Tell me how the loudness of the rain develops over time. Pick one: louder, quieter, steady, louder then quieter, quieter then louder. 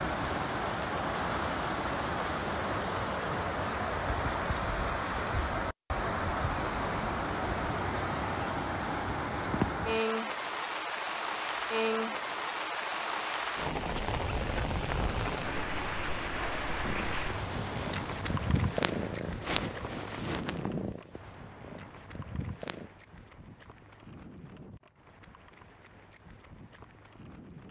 quieter.